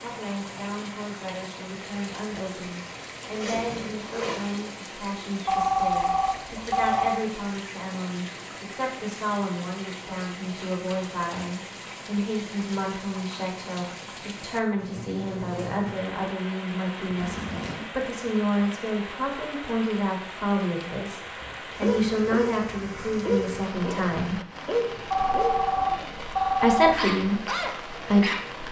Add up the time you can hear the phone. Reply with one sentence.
The phone can be heard for 4 seconds in total.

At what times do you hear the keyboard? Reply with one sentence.
The keyboard can't be heard in this clip.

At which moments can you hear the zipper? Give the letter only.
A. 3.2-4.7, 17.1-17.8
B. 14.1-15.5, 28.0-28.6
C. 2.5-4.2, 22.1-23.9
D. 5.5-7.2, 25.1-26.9
A.